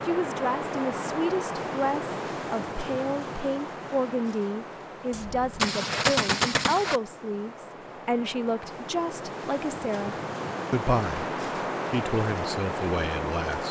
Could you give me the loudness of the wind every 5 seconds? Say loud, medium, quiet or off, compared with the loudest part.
loud, medium, loud.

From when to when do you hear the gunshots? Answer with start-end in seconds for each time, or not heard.
5.1-7.0.